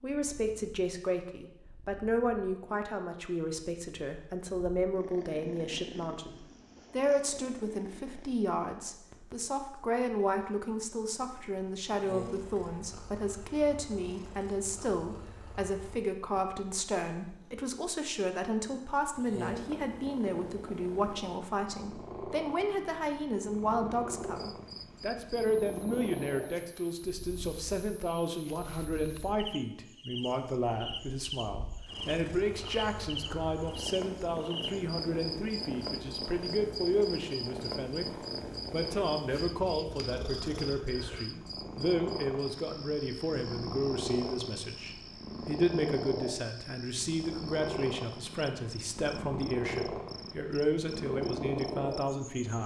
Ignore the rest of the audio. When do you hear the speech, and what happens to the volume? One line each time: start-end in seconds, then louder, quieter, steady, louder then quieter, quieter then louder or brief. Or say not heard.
0.0-52.6 steady.